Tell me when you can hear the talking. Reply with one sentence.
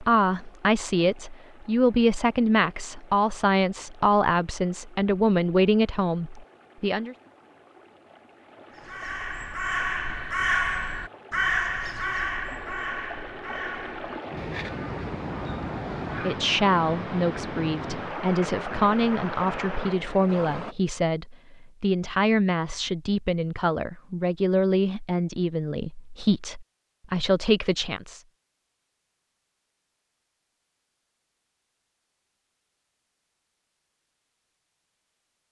The talking can be heard from 0.0 to 7.2 s and from 16.2 to 28.2 s.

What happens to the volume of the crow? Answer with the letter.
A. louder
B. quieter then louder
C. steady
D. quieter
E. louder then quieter
D.